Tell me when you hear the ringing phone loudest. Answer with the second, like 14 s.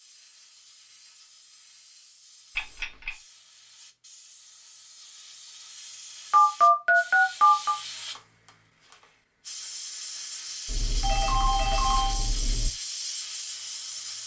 7 s.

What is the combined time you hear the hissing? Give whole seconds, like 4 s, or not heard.
14 s.